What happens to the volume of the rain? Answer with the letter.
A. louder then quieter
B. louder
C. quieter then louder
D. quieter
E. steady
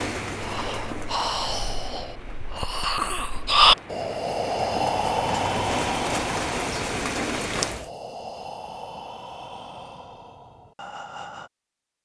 C.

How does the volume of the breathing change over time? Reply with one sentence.
The loudness of the breathing goes up, then down.